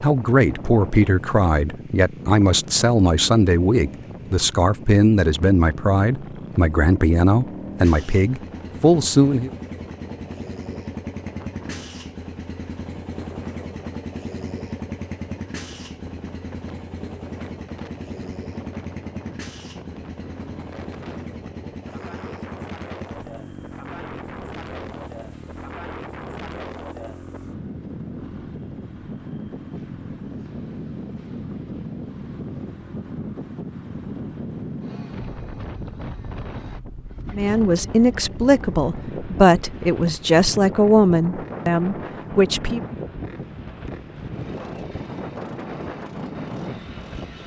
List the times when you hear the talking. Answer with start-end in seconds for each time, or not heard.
0.0-9.5, 37.3-42.8.